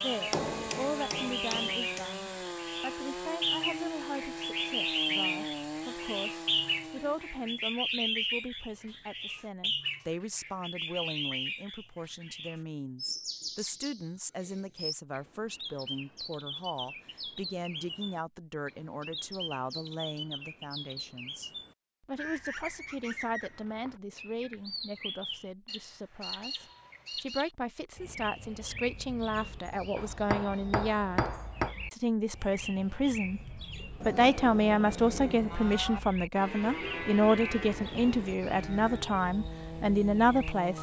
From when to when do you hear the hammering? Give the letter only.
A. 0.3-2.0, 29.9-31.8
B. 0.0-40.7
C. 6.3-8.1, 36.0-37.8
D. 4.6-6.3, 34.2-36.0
A.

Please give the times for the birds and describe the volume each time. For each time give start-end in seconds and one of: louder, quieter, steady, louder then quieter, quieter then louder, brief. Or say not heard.
0.0-40.7 quieter.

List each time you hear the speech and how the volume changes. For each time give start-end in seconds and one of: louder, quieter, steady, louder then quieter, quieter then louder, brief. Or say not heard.
0.0-40.7 louder.